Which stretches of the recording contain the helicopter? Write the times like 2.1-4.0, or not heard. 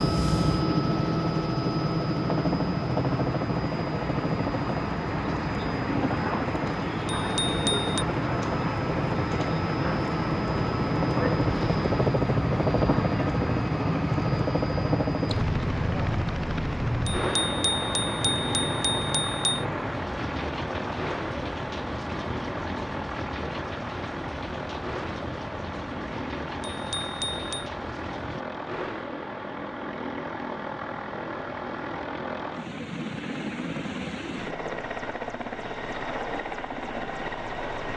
0.0-37.9.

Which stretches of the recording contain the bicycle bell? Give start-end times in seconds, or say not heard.
7.2-8.1, 17.1-19.6, 26.6-27.7.